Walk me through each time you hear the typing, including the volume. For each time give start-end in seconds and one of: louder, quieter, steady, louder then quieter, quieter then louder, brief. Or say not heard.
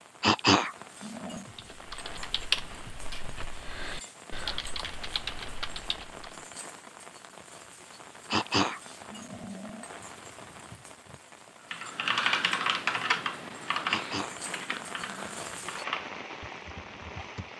1.6-6.4 quieter then louder
11.7-17.4 quieter.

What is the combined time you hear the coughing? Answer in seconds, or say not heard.
4 s.